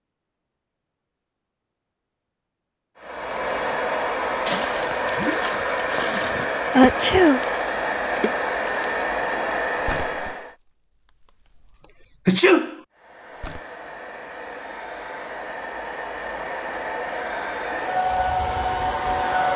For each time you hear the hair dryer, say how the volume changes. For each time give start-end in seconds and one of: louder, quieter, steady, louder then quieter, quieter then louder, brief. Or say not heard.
3.0-10.6 steady
12.9-19.5 louder.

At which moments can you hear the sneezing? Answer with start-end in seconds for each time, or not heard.
6.8-7.4, 12.2-12.8.